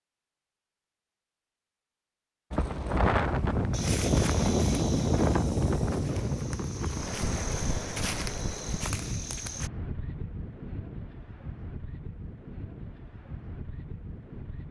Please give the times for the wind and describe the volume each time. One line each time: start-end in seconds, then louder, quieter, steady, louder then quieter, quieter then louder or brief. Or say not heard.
2.5-14.6 quieter.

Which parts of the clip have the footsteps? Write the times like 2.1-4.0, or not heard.
3.7-9.7.